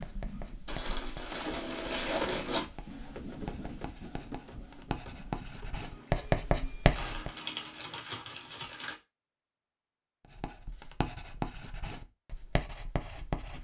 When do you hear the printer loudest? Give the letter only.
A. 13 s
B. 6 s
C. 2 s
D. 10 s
C.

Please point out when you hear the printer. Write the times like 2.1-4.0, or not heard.
0.0-8.0.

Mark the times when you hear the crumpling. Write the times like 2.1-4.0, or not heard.
0.7-2.6, 7.0-8.9.